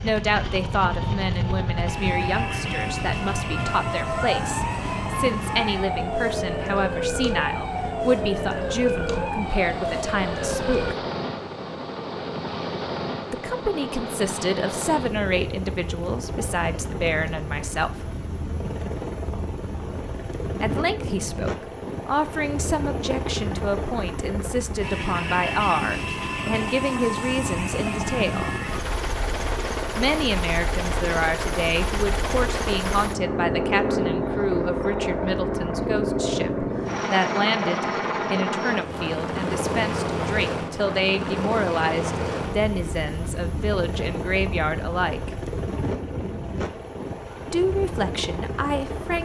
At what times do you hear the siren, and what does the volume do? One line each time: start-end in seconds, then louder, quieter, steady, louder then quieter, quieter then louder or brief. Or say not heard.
0.0-10.9 steady.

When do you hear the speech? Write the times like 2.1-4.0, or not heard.
0.0-10.9, 13.3-18.1, 20.6-28.6, 29.9-45.3, 47.5-49.2.